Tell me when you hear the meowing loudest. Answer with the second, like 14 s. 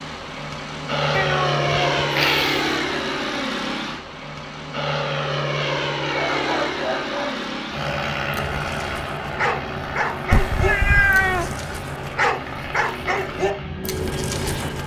11 s.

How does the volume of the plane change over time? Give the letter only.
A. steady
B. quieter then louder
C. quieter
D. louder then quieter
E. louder
C.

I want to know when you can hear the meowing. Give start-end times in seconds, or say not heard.
1.1-2.6, 10.3-11.6.